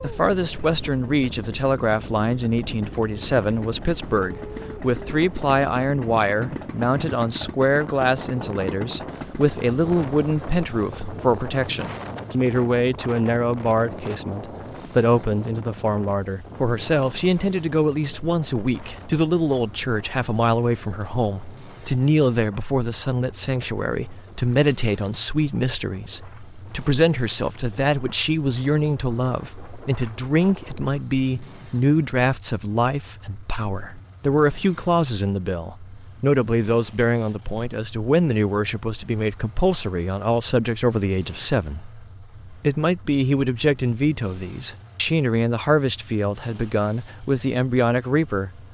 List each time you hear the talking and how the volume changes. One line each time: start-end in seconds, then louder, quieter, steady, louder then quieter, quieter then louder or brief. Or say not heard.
0.0-48.6 steady.